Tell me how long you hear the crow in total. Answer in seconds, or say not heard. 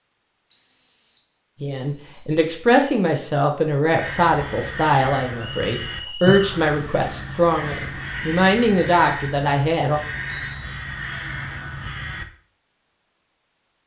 8 s.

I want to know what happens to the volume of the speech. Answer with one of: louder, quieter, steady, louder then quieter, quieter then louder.
steady.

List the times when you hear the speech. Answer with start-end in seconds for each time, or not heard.
1.6-10.0.